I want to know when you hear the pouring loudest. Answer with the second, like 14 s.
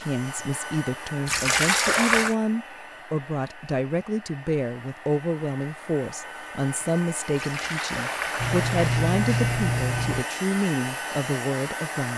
2 s.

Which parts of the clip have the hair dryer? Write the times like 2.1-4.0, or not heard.
0.0-12.1.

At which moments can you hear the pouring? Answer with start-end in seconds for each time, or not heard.
1.2-2.4, 7.3-8.9.